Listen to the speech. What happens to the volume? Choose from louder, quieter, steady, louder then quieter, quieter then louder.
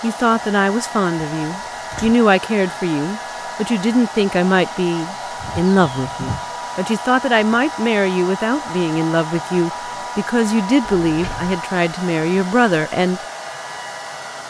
steady.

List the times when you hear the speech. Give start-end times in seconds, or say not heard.
0.0-13.2.